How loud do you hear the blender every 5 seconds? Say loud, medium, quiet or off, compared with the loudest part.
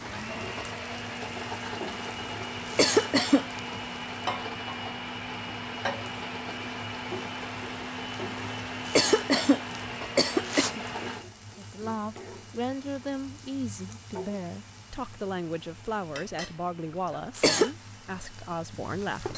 loud, loud, medium, quiet.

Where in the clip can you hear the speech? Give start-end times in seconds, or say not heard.
11.6-19.3.